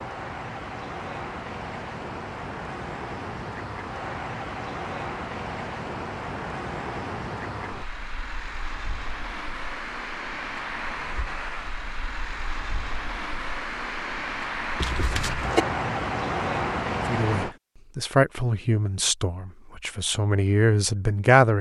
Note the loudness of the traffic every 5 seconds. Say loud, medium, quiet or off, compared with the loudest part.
medium, medium, medium, loud, off.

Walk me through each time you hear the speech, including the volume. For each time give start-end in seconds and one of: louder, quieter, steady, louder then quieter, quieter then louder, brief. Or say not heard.
17.1-21.5 quieter then louder.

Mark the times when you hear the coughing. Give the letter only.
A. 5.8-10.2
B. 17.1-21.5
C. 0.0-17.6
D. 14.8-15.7
D.